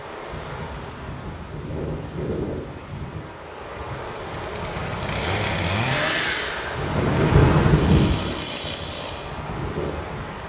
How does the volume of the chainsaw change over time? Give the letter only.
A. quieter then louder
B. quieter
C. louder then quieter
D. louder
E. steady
C.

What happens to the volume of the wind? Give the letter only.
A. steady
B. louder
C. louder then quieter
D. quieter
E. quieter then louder
C.